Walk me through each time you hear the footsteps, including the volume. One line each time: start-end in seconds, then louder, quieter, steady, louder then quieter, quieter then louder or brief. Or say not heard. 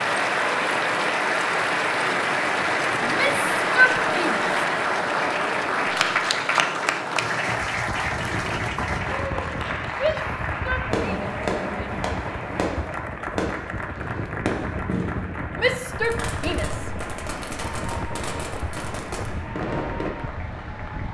not heard.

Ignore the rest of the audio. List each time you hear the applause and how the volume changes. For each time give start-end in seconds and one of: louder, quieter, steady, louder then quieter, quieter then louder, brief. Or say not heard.
0.0-21.0 quieter.